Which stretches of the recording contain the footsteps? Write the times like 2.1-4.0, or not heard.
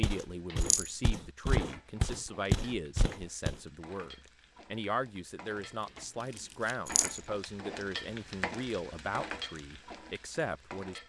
0.0-3.5.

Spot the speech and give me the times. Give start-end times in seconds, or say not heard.
0.0-11.0.